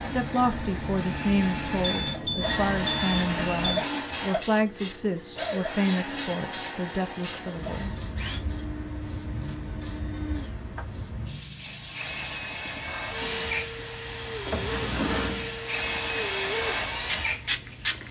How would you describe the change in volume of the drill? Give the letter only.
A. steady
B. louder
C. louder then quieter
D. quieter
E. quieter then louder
E.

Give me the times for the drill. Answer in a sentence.
The drill can be heard from 0.0 to 18.0 s.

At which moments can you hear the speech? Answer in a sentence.
The speech can be heard from 0.0 to 8.0 s.